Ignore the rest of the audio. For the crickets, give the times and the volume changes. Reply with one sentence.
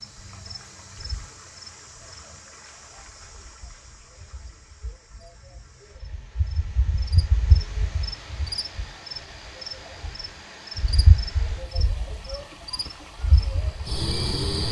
You can hear the crickets from 0.0 to 14.6 s, getting quieter then louder.